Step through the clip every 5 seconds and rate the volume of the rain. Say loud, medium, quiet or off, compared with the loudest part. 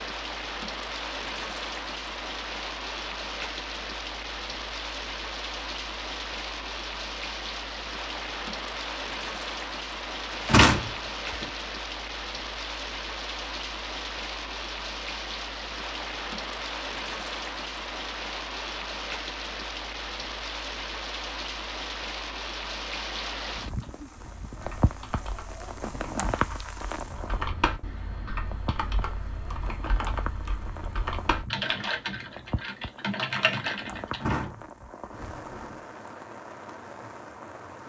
loud, loud, loud, loud, loud, loud, medium, medium.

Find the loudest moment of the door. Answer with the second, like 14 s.
11 s.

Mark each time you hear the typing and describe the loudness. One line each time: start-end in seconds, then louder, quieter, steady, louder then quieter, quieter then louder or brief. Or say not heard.
23.8-34.4 louder.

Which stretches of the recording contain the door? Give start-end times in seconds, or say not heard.
10.3-11.4, 34.1-35.8.